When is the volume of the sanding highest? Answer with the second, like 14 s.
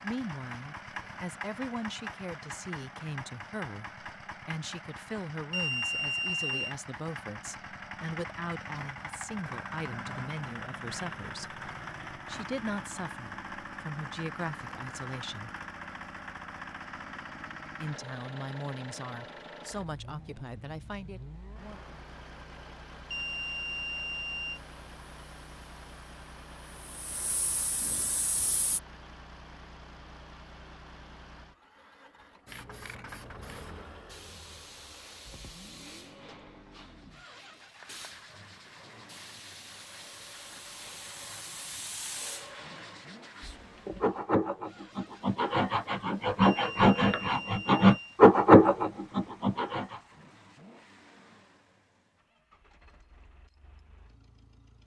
48 s.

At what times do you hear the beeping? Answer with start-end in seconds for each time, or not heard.
5.5-6.8, 23.1-24.6, 46.4-48.2.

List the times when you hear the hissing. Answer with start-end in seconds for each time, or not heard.
24.8-28.8, 32.5-44.2.